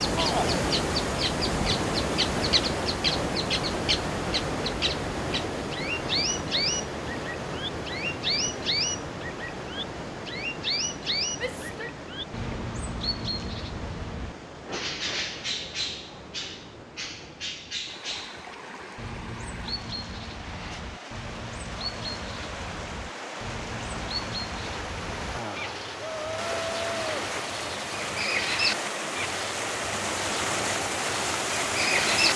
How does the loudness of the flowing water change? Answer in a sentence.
The volume of the flowing water goes down, then up.